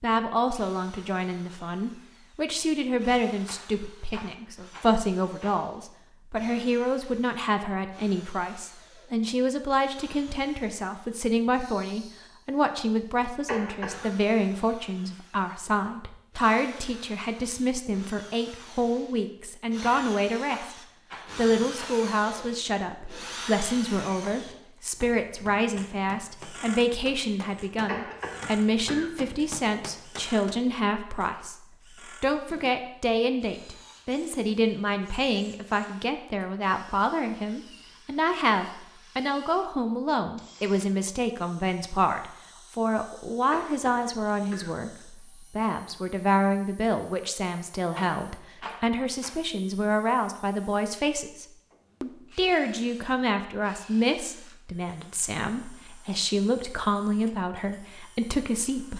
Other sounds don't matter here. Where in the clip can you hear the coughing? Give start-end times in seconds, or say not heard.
13.4-14.1, 27.9-29.1, 43.5-44.7.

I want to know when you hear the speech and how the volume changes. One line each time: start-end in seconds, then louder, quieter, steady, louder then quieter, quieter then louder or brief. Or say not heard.
0.0-58.9 steady.